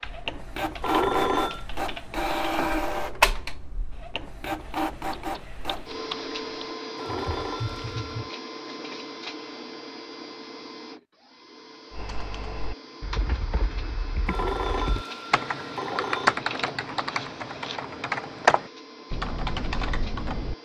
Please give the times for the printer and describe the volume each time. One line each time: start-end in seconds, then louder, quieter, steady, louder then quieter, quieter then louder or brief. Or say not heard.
0.0-20.6 quieter.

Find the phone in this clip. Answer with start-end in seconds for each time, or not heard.
0.8-1.6, 7.0-8.2, 14.2-16.4.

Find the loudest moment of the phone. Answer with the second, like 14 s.
1 s.